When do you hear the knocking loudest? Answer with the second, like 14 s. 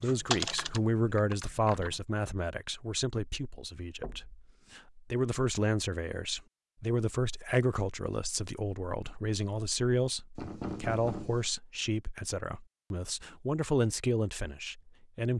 11 s.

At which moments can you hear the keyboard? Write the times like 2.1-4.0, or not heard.
0.0-2.0.